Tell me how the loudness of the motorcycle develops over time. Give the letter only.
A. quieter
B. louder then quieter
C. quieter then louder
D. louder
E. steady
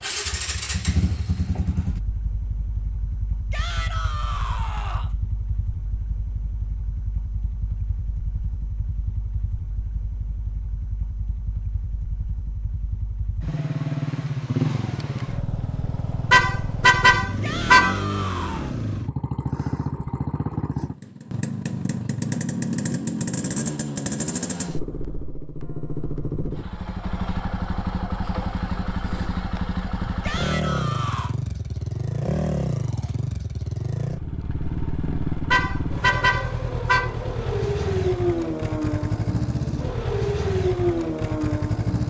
D.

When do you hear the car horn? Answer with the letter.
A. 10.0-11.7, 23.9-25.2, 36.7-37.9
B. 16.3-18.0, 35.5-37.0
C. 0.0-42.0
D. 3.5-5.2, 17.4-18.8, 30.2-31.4
B.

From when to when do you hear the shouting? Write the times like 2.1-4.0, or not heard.
3.5-5.2, 17.4-18.8, 30.2-31.4.